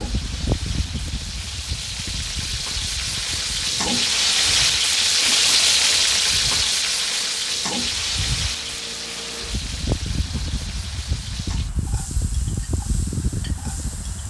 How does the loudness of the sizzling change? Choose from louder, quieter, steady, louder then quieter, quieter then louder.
louder then quieter.